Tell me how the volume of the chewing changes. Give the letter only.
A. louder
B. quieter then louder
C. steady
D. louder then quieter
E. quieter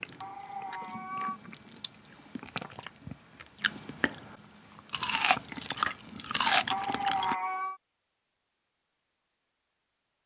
A.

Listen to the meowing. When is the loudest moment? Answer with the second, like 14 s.
7 s.